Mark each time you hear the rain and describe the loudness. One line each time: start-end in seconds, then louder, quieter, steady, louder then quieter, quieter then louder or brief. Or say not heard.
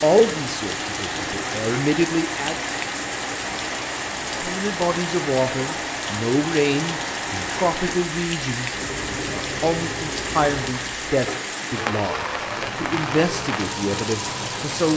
0.0-14.9 steady.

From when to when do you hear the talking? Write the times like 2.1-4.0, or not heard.
0.0-2.5, 4.4-14.9.